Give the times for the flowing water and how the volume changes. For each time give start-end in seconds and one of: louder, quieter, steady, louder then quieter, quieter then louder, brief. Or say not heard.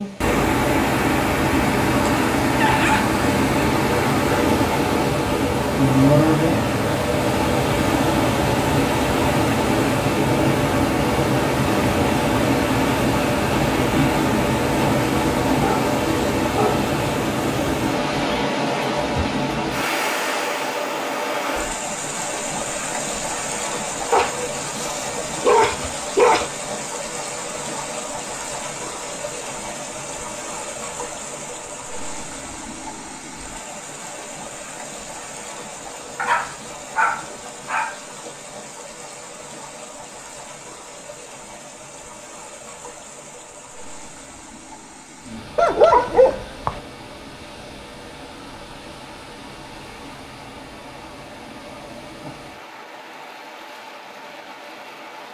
0.0-55.2 quieter.